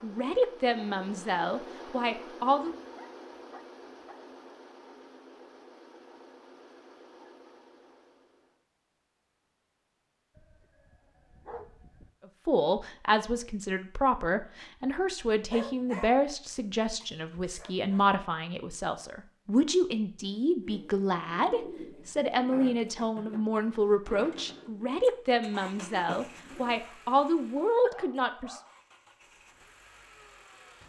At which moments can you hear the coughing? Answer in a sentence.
The coughing can't be heard in this clip.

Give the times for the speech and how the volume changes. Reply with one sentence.
The speech can be heard briefly from 0.0 to 2.8 s; and from 12.4 to 28.6 s, at a steady volume.